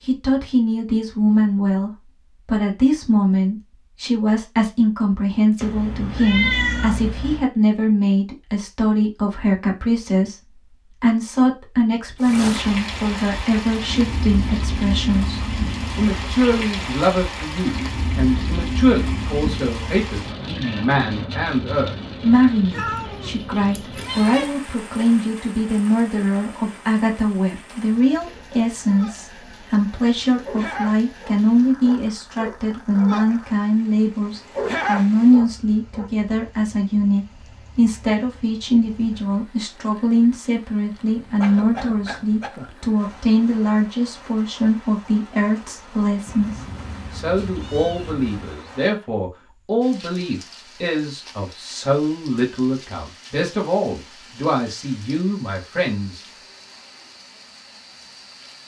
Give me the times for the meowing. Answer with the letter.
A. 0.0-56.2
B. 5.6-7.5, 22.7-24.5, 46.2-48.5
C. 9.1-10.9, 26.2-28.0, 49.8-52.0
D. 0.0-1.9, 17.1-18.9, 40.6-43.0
B.